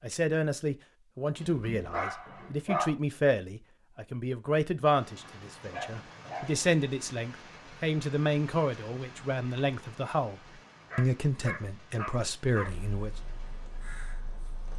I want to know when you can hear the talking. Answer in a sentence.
You can hear the talking from 0.0 to 13.1 s.